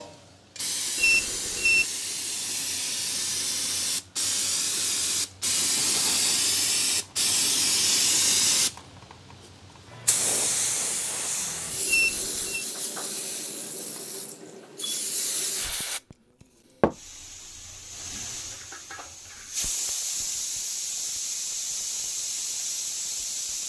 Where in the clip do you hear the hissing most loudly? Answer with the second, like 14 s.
8 s.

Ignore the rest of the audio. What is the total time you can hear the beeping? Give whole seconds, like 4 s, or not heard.
2 s.